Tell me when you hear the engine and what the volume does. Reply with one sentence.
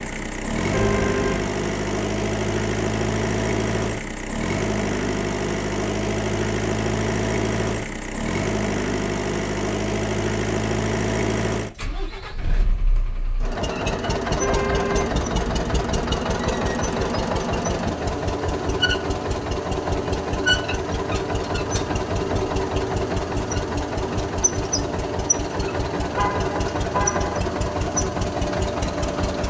The engine can be heard from 0.0 to 29.4 s, at a steady volume.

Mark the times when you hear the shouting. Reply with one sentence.
The shouting can't be heard in this clip.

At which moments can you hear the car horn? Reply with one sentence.
You can hear the car horn from 0.7 to 1.6 s, from 14.4 to 15.9 s and from 26.1 to 27.4 s.